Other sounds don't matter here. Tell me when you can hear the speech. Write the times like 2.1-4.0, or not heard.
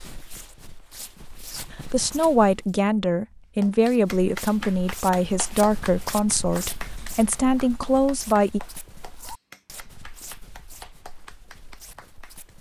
1.9-8.6.